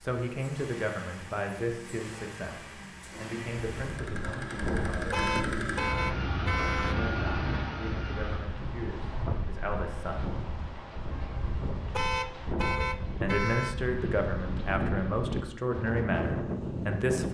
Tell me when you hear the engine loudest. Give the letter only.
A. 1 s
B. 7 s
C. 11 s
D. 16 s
B.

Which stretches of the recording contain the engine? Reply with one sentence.
You can hear the engine from 0.0 to 8.4 s.